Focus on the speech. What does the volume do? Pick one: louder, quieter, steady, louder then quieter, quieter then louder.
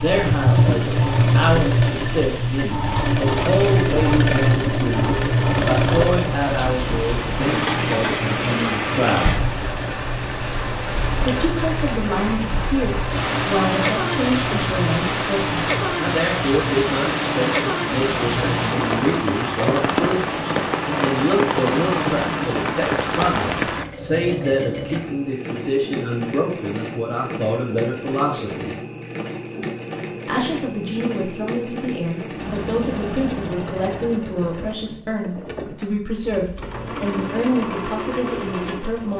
steady.